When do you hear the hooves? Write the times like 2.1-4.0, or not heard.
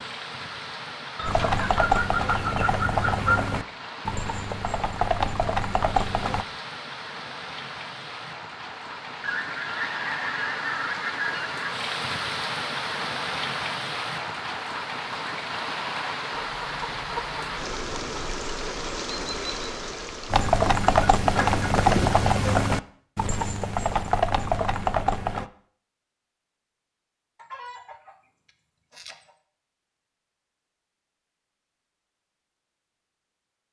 1.2-6.5, 20.3-25.5.